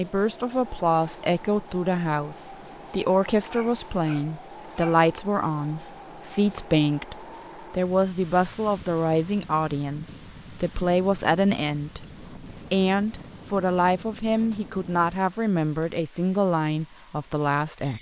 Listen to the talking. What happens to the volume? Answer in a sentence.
The loudness of the talking stays about the same.